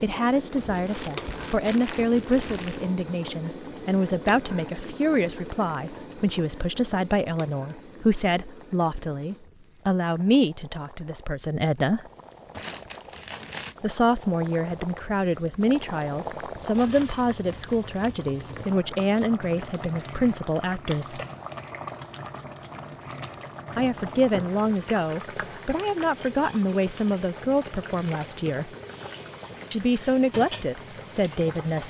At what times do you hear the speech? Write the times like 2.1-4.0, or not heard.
0.0-12.1, 13.8-21.2, 23.8-28.7, 29.7-31.8.